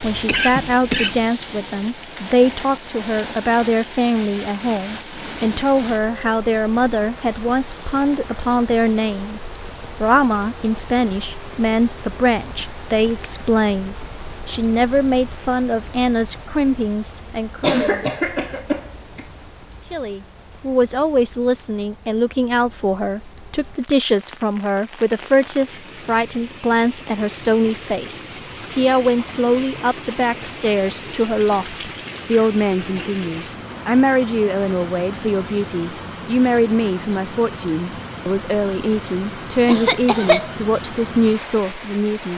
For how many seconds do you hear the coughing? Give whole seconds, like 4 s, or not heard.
4 s.